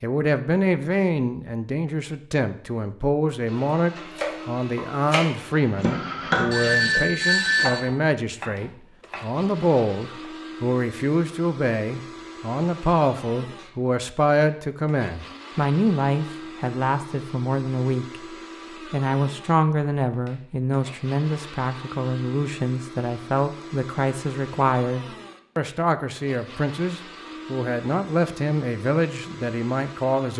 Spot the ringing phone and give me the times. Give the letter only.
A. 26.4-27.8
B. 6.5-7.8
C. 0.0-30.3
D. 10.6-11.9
B.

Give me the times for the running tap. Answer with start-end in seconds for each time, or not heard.
not heard.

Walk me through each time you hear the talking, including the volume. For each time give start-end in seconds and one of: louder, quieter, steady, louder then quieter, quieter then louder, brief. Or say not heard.
0.0-30.3 steady.